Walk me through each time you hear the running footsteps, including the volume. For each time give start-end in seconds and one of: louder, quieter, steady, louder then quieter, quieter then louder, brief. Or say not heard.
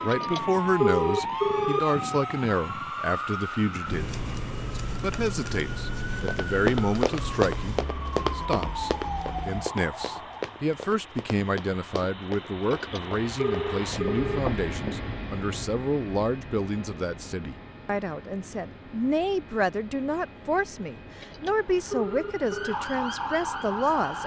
6.2-15.0 quieter.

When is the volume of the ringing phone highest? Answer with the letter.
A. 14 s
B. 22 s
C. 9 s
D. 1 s
D.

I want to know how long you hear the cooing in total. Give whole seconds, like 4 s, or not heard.
not heard.